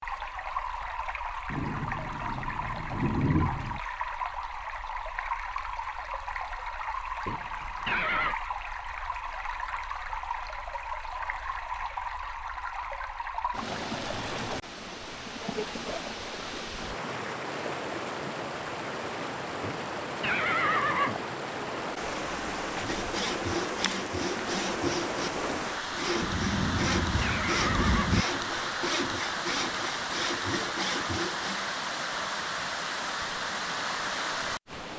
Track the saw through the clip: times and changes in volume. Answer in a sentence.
You can hear the saw from 22.8 to 31.7 s, at a steady volume.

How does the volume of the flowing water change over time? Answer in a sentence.
The volume of the flowing water stays about the same.